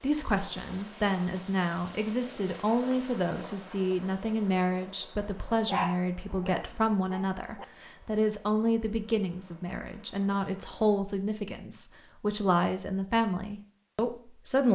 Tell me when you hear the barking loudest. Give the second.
6 s.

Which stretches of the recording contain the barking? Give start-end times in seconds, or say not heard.
5.7-7.7.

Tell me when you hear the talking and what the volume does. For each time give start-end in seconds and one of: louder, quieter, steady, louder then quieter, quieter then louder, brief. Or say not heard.
0.0-14.7 steady.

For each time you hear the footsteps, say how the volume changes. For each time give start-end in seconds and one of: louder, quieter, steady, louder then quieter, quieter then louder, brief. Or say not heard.
not heard.